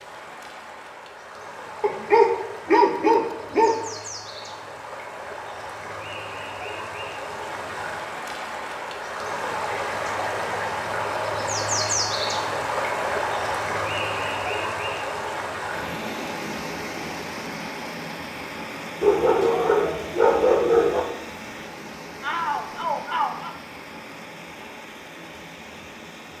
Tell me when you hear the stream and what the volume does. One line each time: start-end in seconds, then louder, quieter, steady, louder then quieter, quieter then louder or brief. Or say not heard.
0.0-26.3 louder then quieter.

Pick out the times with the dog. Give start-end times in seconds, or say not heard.
1.8-3.8, 19.0-21.0.